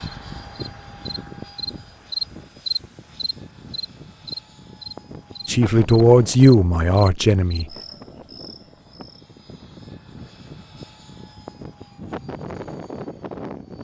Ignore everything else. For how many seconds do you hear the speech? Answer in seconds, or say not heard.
2 s.